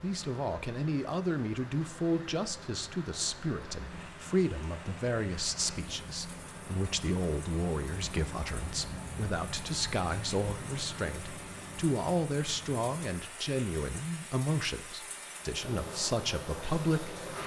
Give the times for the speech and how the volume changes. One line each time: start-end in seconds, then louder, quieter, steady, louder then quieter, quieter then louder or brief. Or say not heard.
0.0-17.2 steady.